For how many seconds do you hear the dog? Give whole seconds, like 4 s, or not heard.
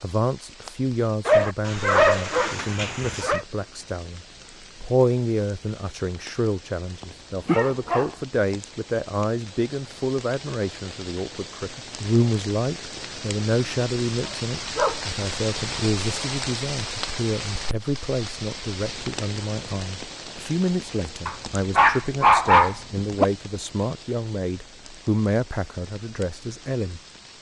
6 s.